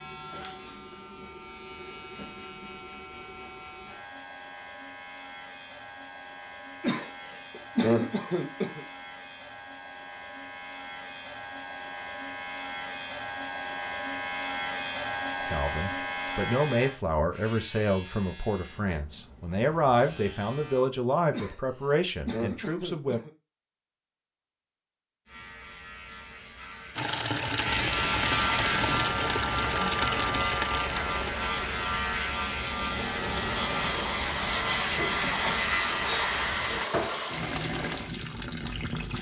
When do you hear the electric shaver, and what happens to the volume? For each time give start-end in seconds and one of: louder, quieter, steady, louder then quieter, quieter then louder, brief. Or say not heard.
0.0-20.9 louder then quieter
25.2-36.9 louder.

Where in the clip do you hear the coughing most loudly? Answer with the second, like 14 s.
8 s.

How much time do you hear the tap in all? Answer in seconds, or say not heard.
12 s.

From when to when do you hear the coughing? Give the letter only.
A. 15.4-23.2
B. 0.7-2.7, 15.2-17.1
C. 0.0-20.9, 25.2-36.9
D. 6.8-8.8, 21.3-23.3
D.